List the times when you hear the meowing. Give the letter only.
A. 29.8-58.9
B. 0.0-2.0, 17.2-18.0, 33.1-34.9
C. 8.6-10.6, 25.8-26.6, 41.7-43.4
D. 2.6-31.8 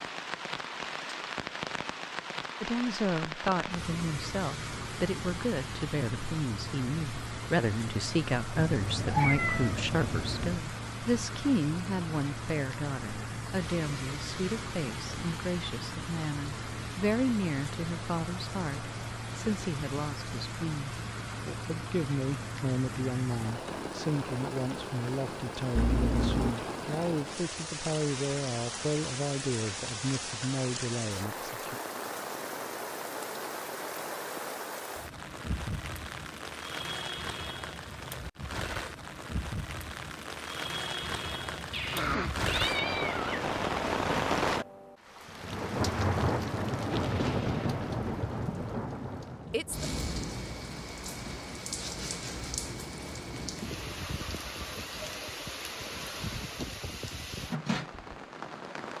C.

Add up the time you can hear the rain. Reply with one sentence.
You can hear the rain for 59 seconds altogether.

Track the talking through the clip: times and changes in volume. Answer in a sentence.
The talking can be heard from 2.6 to 31.8 s, at a steady volume.